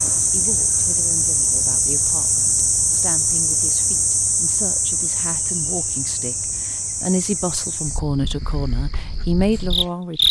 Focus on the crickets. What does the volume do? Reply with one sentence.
The volume of the crickets goes down.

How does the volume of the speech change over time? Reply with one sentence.
The volume of the speech goes up.